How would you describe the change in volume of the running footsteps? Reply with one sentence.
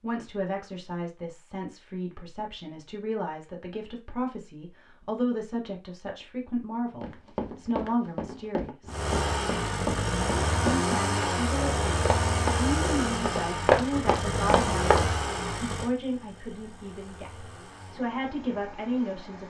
The loudness of the running footsteps goes up.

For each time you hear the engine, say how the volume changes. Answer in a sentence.
You can hear the engine from 8.8 to 19.4 s, getting quieter.